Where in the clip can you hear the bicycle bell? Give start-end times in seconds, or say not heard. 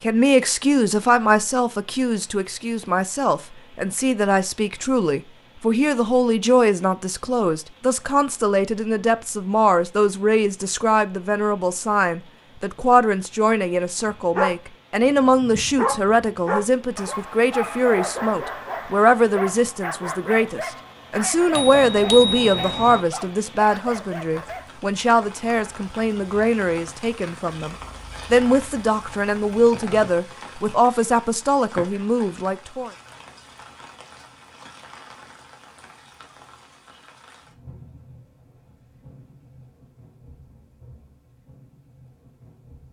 21.5-23.0.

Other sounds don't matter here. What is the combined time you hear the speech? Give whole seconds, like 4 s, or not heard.
33 s.